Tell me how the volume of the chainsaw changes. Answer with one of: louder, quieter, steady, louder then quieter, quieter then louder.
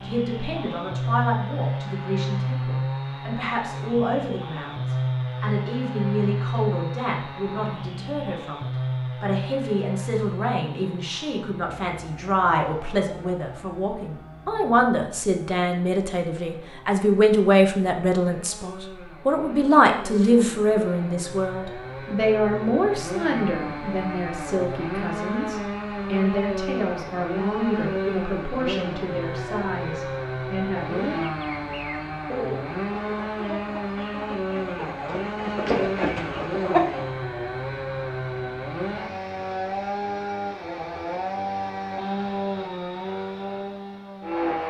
quieter then louder.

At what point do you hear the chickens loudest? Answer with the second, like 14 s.
37 s.